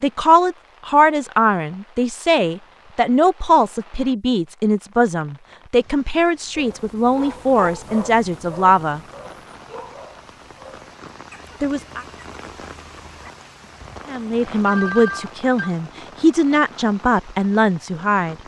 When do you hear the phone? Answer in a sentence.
The phone can be heard from 14.7 to 15.7 s.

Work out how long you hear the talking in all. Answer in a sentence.
You can hear the talking for 14 seconds altogether.